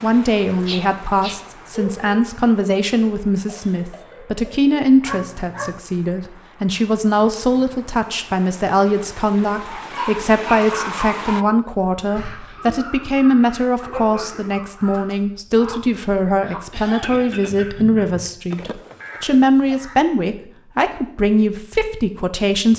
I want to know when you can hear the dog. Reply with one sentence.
The dog can be heard from 0.7 to 2.0 s, from 5.0 to 5.8 s, from 9.8 to 11.6 s, from 13.8 to 15.2 s and from 18.5 to 19.8 s.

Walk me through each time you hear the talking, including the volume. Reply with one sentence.
You can hear the talking from 0.0 to 22.7 s, at a steady volume.